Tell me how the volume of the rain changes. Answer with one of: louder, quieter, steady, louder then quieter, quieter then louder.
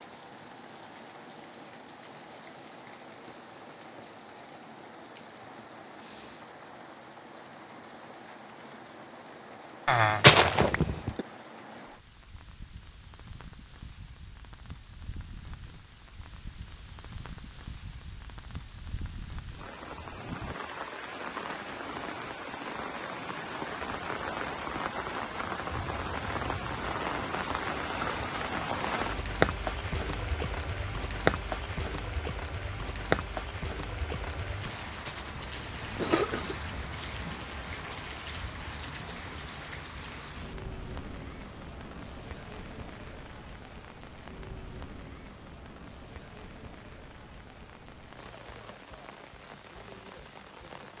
louder then quieter.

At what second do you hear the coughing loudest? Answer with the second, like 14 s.
10 s.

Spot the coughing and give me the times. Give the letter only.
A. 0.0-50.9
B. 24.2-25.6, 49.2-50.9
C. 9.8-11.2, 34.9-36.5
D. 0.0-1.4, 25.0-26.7
C.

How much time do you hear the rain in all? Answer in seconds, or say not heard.
51 s.